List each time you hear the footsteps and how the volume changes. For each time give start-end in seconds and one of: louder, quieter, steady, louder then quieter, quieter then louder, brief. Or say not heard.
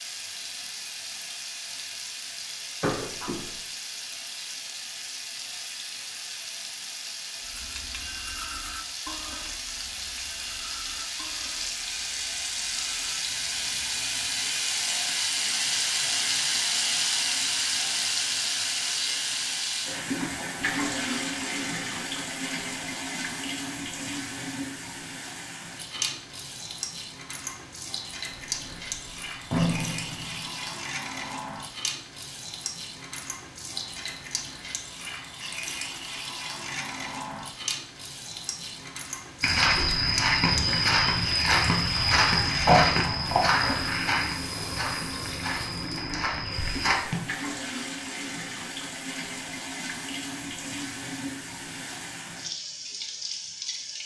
39.4-47.2 quieter.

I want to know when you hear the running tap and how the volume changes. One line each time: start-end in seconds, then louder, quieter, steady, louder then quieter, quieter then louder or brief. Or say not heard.
0.0-54.0 louder then quieter.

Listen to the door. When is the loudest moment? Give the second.
43 s.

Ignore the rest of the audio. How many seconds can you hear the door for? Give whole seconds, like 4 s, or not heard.
4 s.